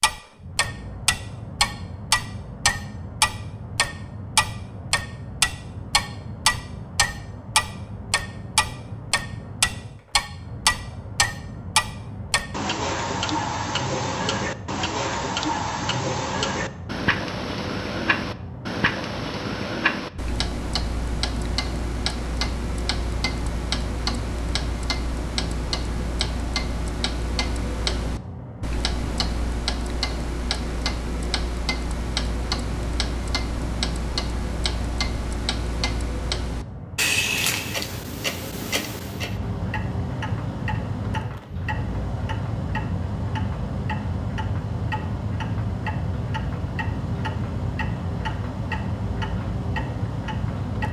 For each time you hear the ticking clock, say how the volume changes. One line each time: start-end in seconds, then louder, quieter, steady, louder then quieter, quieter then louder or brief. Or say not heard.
0.0-50.8 quieter.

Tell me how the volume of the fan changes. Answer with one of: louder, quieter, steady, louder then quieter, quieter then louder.
louder.